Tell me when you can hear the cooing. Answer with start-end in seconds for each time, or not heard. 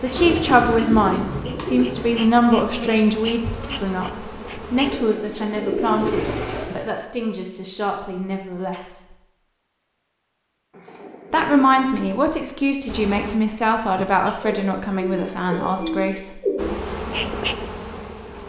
0.1-2.2, 4.8-6.8, 10.7-12.2, 14.2-16.8.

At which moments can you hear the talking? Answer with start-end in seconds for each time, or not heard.
0.0-9.2, 11.3-16.4.